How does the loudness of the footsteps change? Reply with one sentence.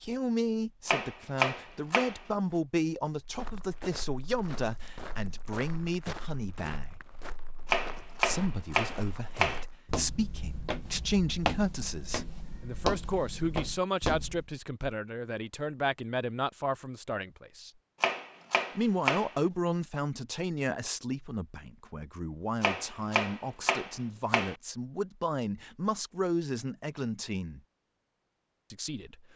The volume of the footsteps goes up.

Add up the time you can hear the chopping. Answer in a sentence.
You can hear the chopping for 7 seconds altogether.